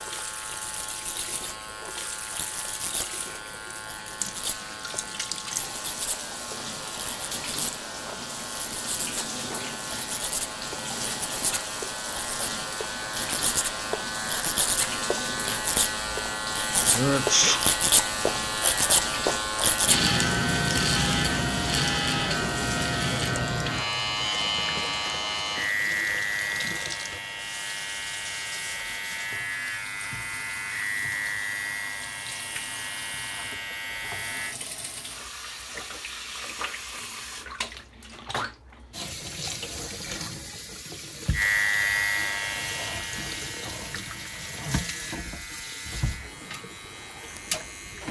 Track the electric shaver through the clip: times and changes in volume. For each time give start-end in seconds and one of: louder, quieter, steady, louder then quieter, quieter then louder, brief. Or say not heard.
0.0-34.5 louder then quieter
41.3-48.0 quieter.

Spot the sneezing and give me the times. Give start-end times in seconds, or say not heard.
16.9-17.6.